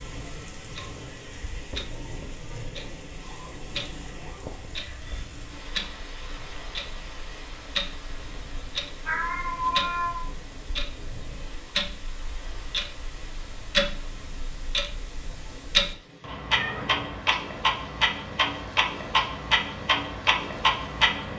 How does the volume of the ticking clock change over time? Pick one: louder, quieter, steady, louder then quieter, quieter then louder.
louder.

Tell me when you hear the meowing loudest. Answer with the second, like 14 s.
10 s.